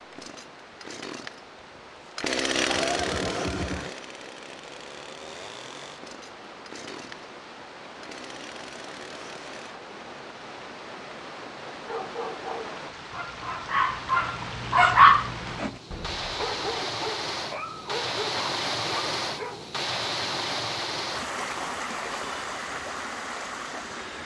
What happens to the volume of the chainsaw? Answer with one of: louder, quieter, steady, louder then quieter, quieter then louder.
louder then quieter.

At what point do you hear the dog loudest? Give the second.
15 s.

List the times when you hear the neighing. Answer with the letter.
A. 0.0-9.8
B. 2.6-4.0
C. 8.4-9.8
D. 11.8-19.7
B.